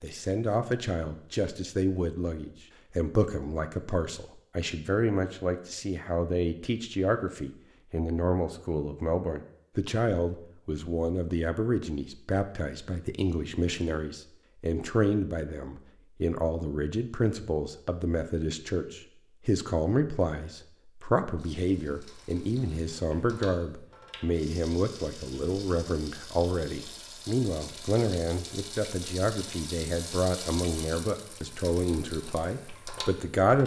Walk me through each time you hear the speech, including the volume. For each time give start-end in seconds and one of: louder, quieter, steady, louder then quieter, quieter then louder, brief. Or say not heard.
0.0-33.6 steady.